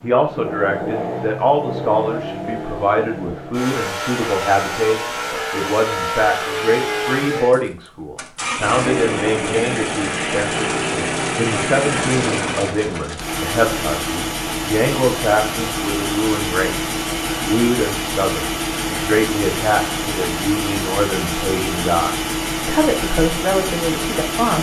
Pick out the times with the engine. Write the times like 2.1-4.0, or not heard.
0.0-24.5.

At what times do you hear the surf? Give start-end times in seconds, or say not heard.
not heard.